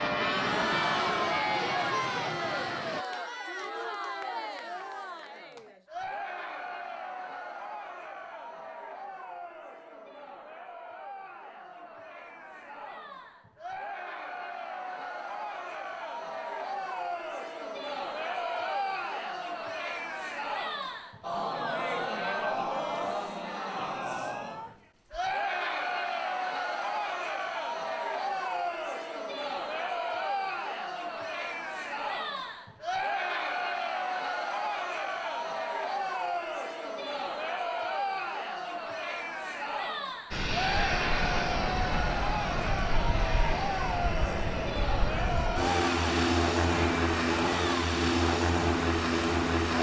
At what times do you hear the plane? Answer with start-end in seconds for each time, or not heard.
0.0-3.0, 40.3-49.7.